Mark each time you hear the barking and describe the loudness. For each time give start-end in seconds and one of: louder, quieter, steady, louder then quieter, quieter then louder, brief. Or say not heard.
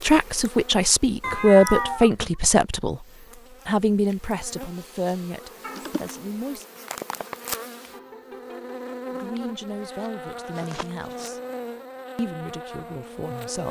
not heard.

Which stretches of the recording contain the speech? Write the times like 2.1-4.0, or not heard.
0.0-3.0, 3.6-6.7, 9.1-11.4, 12.2-13.6.